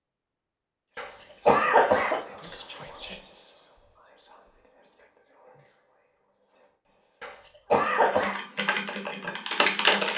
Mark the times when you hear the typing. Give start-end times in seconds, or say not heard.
7.8-10.1.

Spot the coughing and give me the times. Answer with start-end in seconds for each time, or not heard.
0.9-2.2, 7.2-8.3.